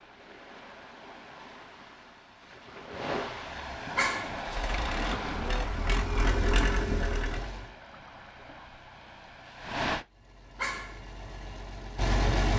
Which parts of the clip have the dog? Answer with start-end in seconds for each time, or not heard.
4.0-4.4, 10.6-11.1.